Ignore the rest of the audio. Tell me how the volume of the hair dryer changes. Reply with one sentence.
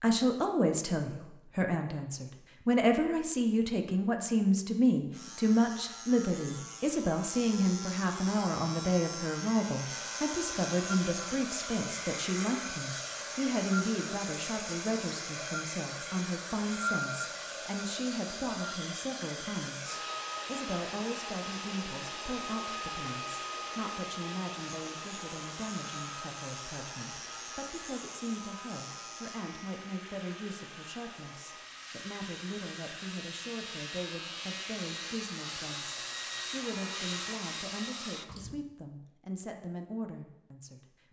The loudness of the hair dryer goes down, then up.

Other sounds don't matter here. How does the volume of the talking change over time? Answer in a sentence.
The loudness of the talking goes down.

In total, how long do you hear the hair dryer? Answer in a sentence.
You can hear the hair dryer for 29 seconds altogether.